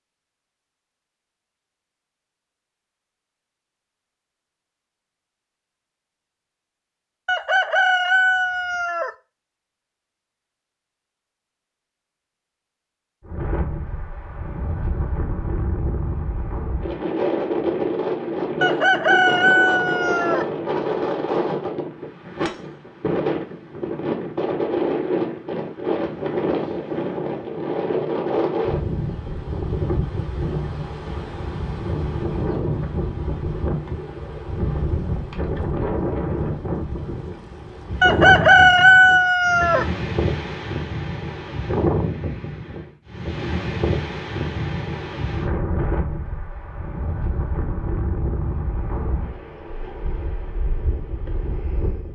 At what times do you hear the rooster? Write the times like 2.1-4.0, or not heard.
7.2-9.1, 18.6-20.4, 38.0-39.9.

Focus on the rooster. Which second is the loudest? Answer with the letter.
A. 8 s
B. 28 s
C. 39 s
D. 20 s
C.